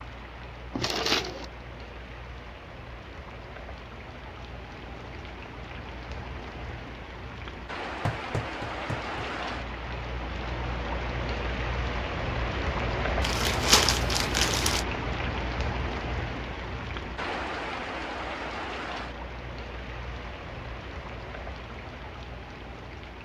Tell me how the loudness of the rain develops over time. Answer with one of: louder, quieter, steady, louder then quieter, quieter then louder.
louder then quieter.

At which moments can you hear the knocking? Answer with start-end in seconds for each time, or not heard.
8.0-9.3.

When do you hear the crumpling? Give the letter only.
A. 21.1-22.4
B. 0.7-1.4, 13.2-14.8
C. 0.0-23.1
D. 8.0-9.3
B.